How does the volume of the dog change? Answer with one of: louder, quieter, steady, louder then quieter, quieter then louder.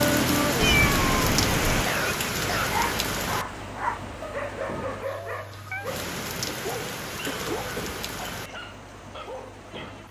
quieter.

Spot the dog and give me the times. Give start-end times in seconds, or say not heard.
2.5-10.0.